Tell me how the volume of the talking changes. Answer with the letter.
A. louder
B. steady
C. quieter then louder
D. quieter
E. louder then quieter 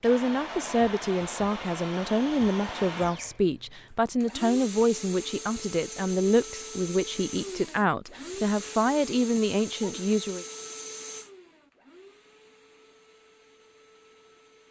B.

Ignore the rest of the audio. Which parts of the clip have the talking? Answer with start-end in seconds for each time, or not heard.
0.0-10.4.